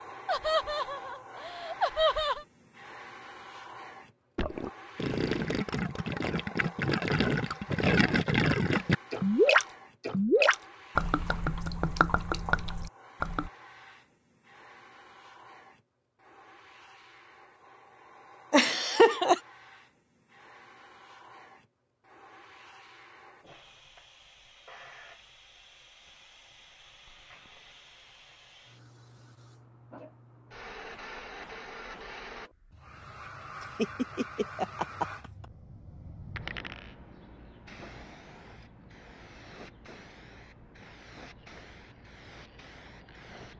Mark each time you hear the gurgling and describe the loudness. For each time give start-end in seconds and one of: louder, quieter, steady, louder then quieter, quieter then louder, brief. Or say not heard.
4.3-13.5 louder then quieter.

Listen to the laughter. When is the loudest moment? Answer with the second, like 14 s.
19 s.